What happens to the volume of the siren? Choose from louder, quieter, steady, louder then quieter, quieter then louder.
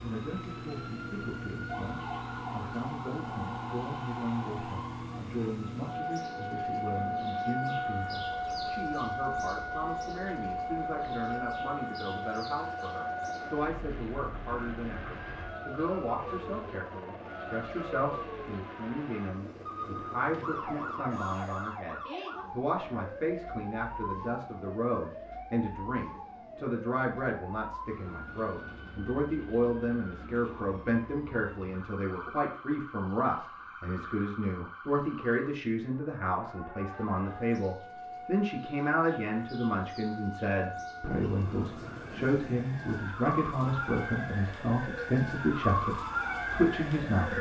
quieter then louder.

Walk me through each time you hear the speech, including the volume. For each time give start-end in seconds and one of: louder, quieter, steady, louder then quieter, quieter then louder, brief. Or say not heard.
0.0-47.3 louder.